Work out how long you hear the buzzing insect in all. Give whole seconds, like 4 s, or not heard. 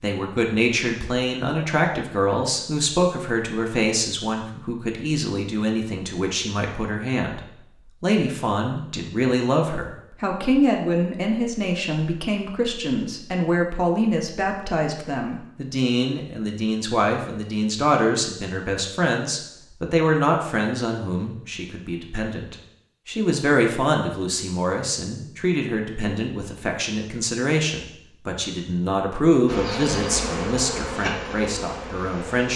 3 s.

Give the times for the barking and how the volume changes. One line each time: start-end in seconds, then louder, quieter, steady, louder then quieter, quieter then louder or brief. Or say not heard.
not heard.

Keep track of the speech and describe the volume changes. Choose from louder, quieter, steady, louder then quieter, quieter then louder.
steady.